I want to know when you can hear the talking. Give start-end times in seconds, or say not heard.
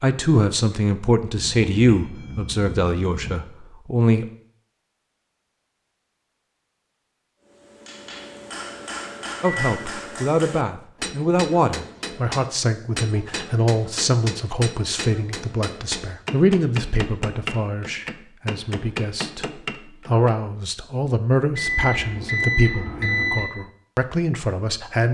0.0-4.2, 9.4-25.0.